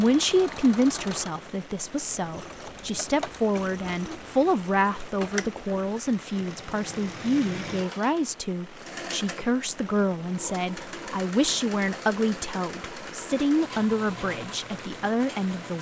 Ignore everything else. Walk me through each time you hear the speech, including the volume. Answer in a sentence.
You can hear the speech from 0.0 to 15.7 s, at a steady volume.